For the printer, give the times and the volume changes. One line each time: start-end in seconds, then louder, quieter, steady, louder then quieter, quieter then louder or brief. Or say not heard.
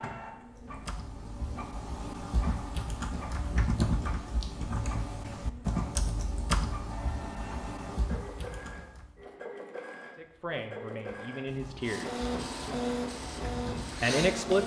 0.0-14.6 louder.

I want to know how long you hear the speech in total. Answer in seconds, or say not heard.
3 s.